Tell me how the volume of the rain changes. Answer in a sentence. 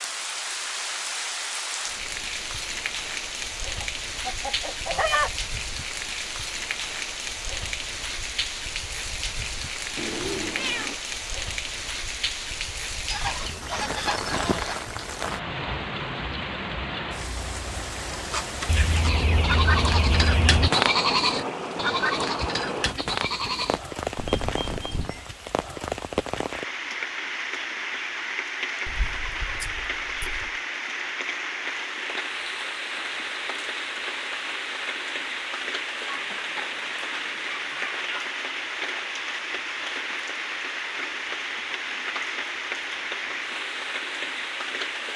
The volume of the rain stays about the same.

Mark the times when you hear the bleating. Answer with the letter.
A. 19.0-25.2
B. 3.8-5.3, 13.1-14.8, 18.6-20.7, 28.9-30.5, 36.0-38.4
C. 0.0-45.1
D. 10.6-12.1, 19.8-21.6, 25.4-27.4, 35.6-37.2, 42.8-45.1
A.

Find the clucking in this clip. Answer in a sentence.
The clucking can be heard from 3.8 to 5.3 s, from 13.1 to 14.8 s, from 18.6 to 20.7 s, from 28.9 to 30.5 s and from 36.0 to 38.4 s.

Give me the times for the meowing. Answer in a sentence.
The meowing can be heard from 9.9 to 10.9 s.